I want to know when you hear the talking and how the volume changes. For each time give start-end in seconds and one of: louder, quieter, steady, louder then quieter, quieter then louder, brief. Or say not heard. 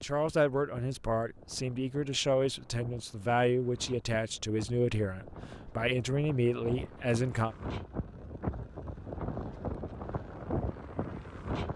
0.0-7.5 steady.